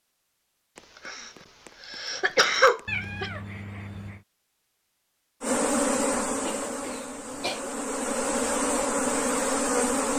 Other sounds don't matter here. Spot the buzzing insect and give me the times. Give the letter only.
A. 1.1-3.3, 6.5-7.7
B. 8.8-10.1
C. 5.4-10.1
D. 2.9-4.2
C.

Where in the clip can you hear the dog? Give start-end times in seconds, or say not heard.
not heard.